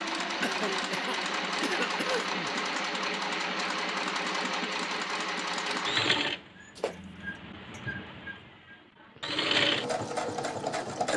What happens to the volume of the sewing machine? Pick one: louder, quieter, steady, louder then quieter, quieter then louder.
quieter then louder.